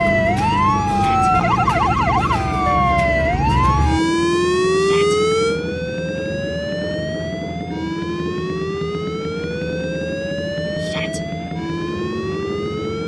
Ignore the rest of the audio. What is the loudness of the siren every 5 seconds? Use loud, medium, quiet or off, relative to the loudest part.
loud, medium, medium.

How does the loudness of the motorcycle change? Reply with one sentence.
The volume of the motorcycle stays about the same.